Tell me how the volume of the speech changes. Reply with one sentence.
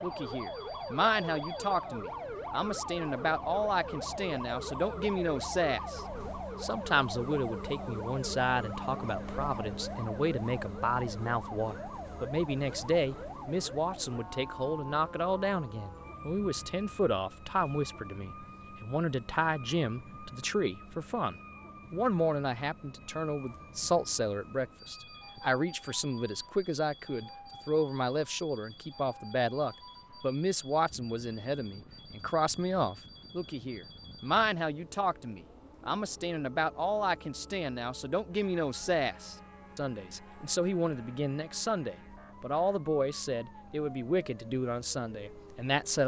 The loudness of the speech stays about the same.